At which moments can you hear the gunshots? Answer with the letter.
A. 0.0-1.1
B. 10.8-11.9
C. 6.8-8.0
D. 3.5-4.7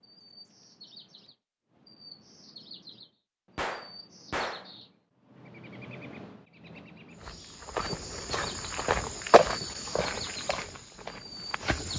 D.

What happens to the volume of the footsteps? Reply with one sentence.
The volume of the footsteps goes up, then down.